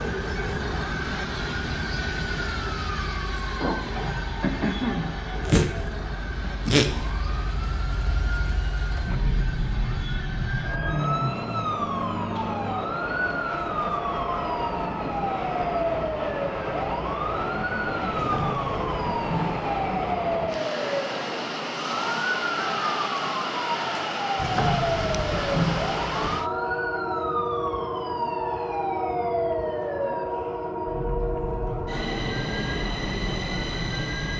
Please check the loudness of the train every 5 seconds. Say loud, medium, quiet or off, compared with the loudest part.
loud, medium, loud, loud, loud, loud, loud.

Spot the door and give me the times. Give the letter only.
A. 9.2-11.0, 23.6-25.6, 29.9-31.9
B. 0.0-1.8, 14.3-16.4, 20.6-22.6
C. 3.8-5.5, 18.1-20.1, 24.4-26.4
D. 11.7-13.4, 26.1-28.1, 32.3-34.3
C.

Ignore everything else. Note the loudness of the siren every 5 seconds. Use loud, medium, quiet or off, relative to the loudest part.
loud, loud, loud, loud, loud, loud, medium.